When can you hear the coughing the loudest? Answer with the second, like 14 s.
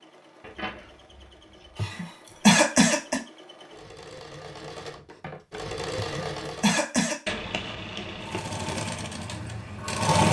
3 s.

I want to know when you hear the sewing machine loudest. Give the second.
10 s.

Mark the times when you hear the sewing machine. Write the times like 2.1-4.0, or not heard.
0.0-6.8, 8.2-10.2.